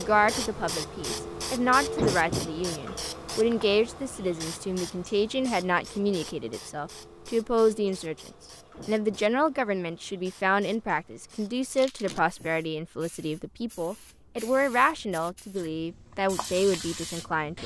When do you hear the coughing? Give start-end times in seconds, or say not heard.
1.9-2.5, 8.7-9.2, 12.0-12.6.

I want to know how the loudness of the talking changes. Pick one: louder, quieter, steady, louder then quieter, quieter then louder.
steady.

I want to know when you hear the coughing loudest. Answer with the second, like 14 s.
2 s.